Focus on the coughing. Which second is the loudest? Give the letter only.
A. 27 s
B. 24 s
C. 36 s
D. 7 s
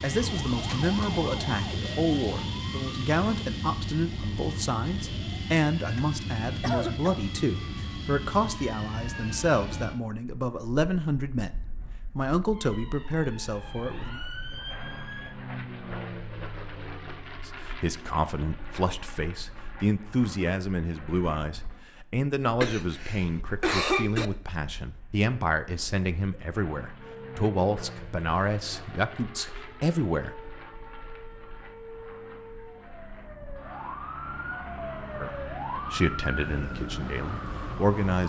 B.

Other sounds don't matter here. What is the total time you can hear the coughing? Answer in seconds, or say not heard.
3 s.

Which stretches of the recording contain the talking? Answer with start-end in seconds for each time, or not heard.
0.0-14.2, 17.4-30.4, 35.1-38.2.